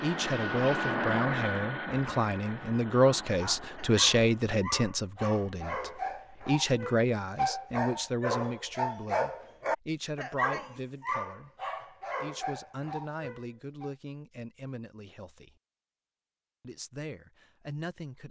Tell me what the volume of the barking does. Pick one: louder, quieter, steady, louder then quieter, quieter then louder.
louder then quieter.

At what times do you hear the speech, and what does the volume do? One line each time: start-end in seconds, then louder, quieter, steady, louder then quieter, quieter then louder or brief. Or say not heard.
0.0-15.5 quieter
16.6-18.2 brief.